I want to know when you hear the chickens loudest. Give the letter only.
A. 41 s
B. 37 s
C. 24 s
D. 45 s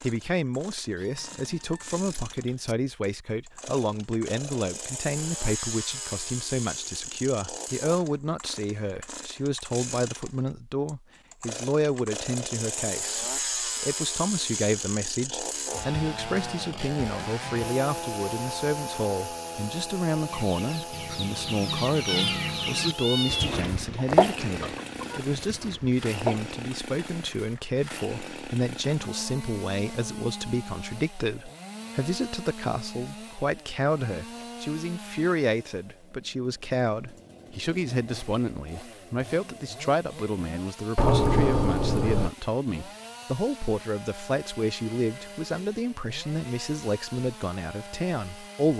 C.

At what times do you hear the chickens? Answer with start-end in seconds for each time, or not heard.
20.2-26.5.